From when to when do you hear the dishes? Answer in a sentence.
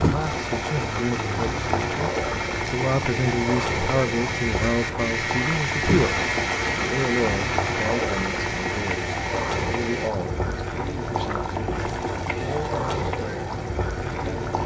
The dishes can't be heard in this clip.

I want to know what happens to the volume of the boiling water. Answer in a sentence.
The loudness of the boiling water stays about the same.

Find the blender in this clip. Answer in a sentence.
You can hear the blender from 0.1 to 10.1 s.